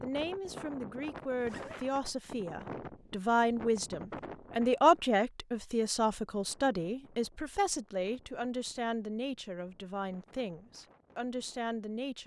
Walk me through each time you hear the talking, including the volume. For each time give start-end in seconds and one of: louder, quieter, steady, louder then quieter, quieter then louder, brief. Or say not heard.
0.0-12.2 louder then quieter.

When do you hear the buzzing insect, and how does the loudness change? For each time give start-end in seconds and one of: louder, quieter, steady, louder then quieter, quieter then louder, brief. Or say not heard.
not heard.